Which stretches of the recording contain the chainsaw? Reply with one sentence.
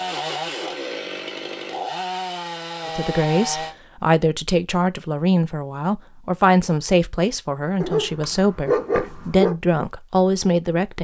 You can hear the chainsaw from 0.0 to 3.8 s.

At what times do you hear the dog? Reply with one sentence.
You can hear the dog from 7.8 to 9.6 s.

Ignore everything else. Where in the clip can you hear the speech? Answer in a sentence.
You can hear the speech from 2.9 to 10.9 s.